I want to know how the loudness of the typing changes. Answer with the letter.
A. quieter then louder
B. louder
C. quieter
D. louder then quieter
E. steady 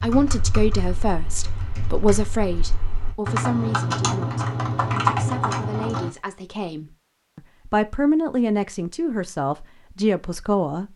B.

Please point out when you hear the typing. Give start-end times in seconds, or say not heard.
0.0-6.1.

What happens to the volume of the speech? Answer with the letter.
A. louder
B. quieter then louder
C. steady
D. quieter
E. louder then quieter
B.